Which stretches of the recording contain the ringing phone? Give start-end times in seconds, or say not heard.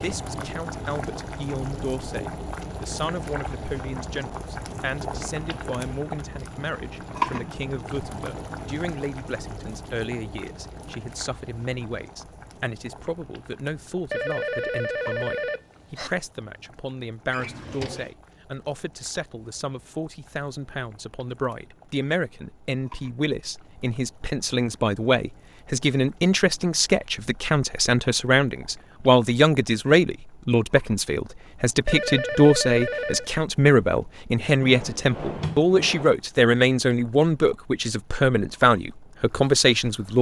14.1-16.1, 31.9-33.3.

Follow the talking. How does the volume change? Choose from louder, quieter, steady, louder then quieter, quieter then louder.
louder.